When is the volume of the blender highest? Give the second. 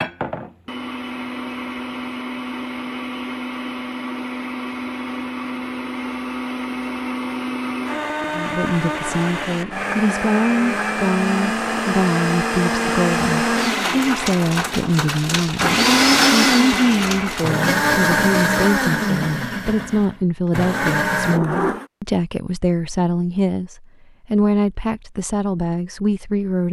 16 s.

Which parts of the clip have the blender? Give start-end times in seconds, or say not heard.
0.0-21.9.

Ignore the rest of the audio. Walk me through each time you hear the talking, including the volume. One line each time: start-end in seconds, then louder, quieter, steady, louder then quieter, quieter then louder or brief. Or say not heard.
8.3-26.6 steady.